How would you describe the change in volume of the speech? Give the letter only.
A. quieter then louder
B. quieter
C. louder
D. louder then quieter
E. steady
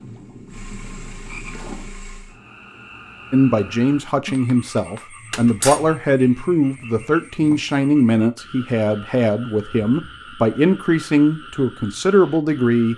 E.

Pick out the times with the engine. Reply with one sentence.
You can hear the engine from 0.0 to 2.4 s.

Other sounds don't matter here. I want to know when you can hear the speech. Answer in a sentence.
You can hear the speech from 3.3 to 12.9 s.